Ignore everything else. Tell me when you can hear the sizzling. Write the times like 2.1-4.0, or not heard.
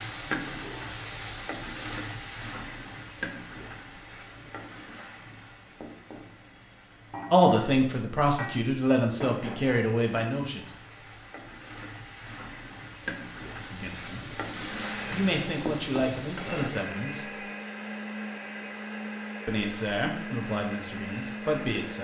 0.0-16.9.